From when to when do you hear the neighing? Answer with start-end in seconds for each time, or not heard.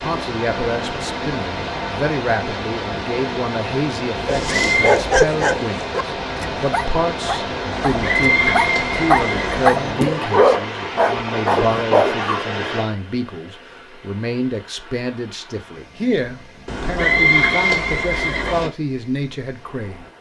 4.2-5.0, 7.7-9.8, 16.6-18.7.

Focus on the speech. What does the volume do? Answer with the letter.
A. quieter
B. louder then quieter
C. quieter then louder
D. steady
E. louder
D.